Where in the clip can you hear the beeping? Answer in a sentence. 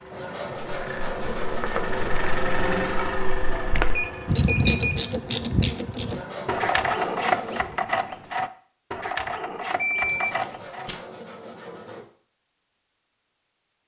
You can hear the beeping from 3.9 to 5.0 s and from 9.8 to 11.0 s.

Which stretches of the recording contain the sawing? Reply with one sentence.
You can hear the sawing from 0.1 to 2.1 s, from 6.0 to 7.7 s and from 10.0 to 12.1 s.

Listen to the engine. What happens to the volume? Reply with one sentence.
The volume of the engine goes up, then down.